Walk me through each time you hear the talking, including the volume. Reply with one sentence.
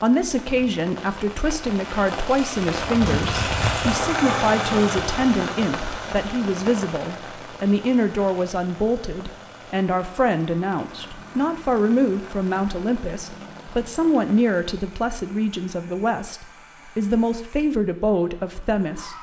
You can hear the talking from 0.0 to 19.1 s, at a steady volume.